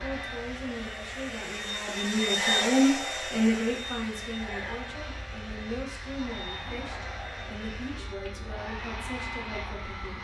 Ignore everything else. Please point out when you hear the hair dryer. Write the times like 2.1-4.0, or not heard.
0.0-10.1.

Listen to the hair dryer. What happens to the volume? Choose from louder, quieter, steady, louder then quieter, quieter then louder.
louder then quieter.